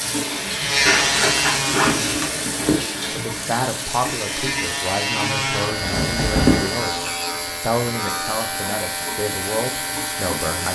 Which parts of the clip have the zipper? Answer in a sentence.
You can hear the zipper from 0.8 to 2.9 s and from 5.7 to 6.8 s.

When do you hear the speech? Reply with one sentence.
You can hear the speech from 3.1 to 10.7 s.